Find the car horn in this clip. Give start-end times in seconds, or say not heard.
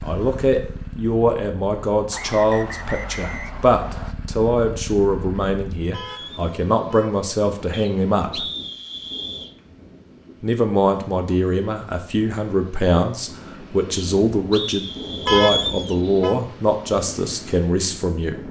5.9-7.1, 15.2-16.4.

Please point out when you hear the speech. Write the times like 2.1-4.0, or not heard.
0.0-8.4, 10.4-18.4.